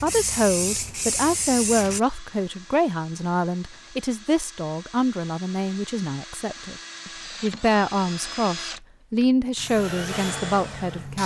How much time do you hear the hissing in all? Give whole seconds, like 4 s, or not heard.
4 s.